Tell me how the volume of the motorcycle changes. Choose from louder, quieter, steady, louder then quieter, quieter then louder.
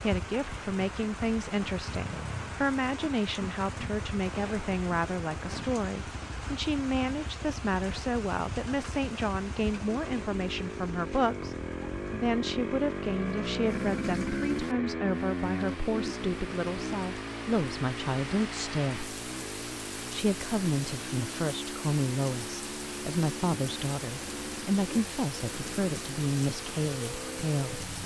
louder then quieter.